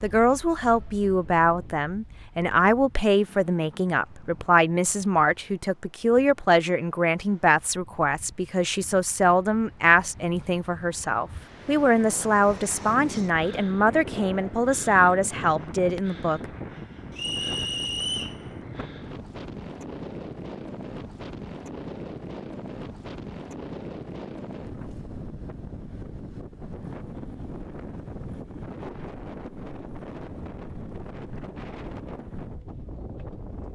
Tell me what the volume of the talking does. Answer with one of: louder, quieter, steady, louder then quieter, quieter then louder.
steady.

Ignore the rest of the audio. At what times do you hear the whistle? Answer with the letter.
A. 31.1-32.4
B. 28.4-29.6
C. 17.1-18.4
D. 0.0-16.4
C.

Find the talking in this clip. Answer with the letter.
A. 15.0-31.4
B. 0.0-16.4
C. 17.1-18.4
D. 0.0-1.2
B.